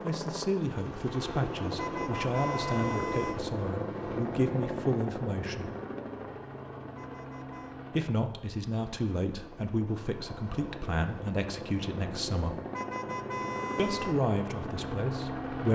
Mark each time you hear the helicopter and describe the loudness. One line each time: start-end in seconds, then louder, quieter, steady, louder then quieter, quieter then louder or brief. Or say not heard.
0.0-15.7 quieter then louder.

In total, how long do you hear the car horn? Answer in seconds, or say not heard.
4 s.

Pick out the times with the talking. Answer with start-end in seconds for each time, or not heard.
0.0-5.7, 8.0-12.6, 13.8-15.7.